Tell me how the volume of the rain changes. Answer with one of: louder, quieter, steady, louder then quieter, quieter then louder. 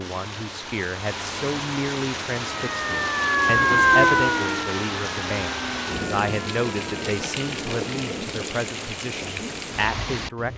steady.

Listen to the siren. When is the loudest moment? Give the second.
4 s.